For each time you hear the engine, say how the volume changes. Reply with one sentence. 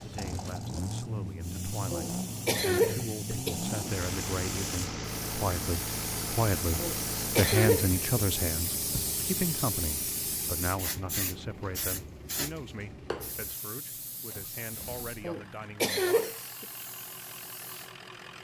You can hear the engine from 0.0 to 18.3 s, getting quieter.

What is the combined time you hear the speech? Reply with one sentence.
The speech can be heard for 16 seconds in total.